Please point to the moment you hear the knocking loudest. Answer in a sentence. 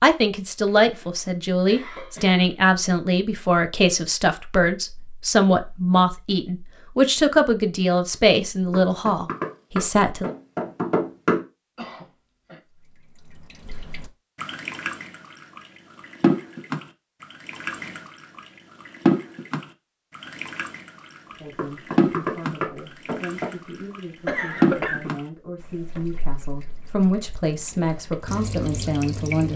The loudest moment of the knocking is at 11 seconds.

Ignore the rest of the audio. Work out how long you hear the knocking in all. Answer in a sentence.
You can hear the knocking for 5 seconds altogether.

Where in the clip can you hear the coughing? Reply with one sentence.
The coughing can be heard from 0.7 to 2.5 s, from 11.8 to 12.6 s and from 24.2 to 25.1 s.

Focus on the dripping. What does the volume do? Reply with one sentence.
The volume of the dripping goes down.